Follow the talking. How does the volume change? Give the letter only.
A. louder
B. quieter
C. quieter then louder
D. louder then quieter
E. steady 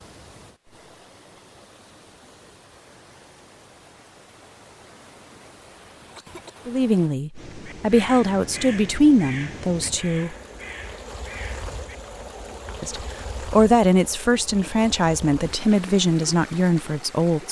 E.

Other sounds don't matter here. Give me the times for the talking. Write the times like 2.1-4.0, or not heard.
6.7-10.3, 12.8-17.4.